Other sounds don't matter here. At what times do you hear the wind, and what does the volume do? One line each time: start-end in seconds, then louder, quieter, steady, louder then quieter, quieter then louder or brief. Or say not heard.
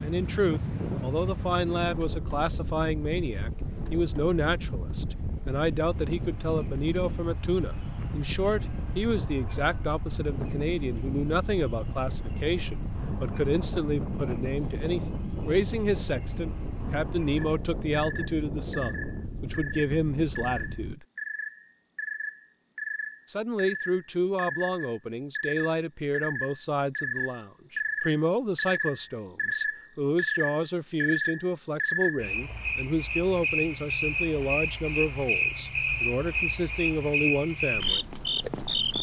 0.0-20.9 steady.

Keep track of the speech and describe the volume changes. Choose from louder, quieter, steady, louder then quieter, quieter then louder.
steady.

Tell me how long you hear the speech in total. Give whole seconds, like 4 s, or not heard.
36 s.